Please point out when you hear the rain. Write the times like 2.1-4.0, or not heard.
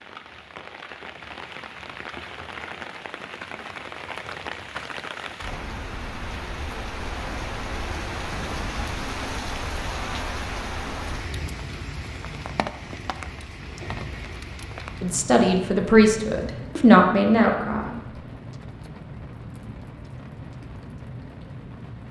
0.0-22.0.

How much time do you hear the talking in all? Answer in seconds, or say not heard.
3 s.